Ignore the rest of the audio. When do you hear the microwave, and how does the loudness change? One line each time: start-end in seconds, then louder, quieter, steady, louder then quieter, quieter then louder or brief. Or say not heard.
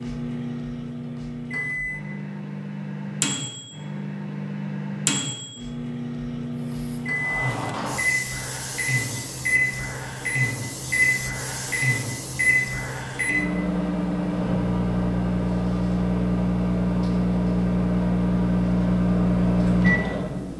0.0-20.5 louder.